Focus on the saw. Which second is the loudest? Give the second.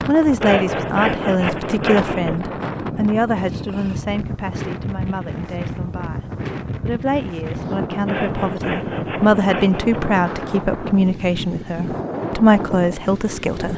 1 s.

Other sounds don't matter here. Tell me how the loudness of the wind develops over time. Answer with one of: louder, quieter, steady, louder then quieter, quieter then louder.
steady.